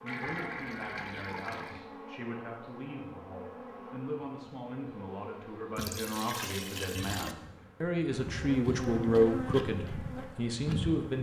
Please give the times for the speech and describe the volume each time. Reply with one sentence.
You can hear the speech from 0.0 to 11.1 s, getting louder.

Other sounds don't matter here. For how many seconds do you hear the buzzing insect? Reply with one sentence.
The buzzing insect can be heard for 11 seconds in total.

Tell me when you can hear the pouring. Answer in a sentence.
The pouring can be heard from 0.1 to 1.9 s and from 5.8 to 7.3 s.